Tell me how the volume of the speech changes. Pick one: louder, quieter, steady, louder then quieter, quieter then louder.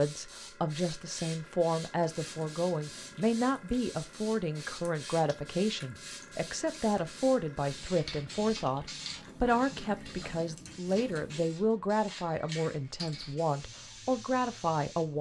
steady.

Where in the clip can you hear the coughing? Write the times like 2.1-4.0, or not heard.
not heard.